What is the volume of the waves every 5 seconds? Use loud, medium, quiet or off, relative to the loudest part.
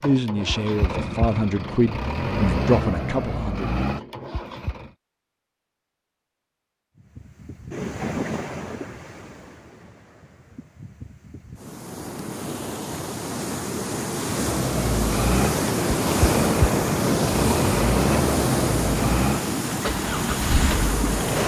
off, medium, medium, loud, loud.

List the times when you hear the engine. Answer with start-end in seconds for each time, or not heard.
0.0-4.9, 14.3-21.4.